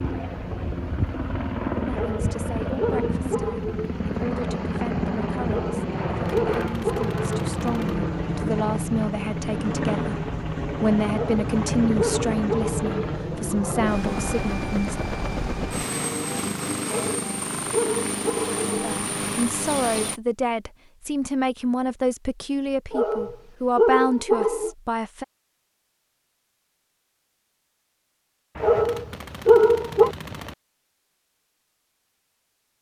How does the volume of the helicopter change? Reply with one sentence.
The loudness of the helicopter stays about the same.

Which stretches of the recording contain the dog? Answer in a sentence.
You can hear the dog from 1.9 to 4.0 s, from 5.5 to 7.2 s, from 11.1 to 12.9 s, from 16.9 to 18.6 s, from 22.9 to 24.7 s and from 28.6 to 30.1 s.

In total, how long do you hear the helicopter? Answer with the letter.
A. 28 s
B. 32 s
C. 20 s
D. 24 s
C.